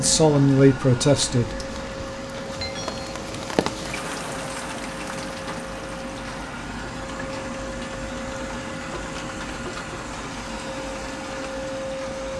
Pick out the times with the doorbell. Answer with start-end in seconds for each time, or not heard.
2.6-3.1.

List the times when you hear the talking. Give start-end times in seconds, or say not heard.
0.0-1.7.